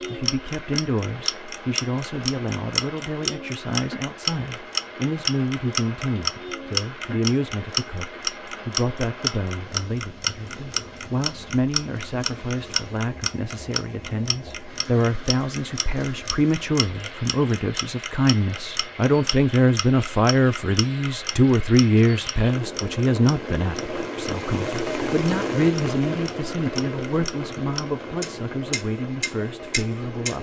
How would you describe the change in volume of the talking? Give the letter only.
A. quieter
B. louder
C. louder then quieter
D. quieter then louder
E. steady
C.